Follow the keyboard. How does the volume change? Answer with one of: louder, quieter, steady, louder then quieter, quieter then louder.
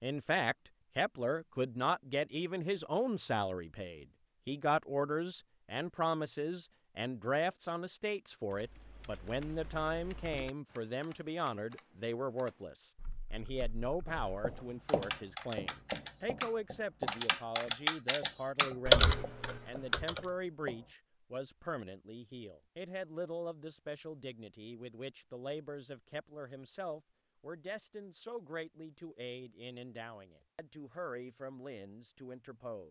louder.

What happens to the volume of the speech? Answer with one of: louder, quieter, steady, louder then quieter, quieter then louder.
quieter.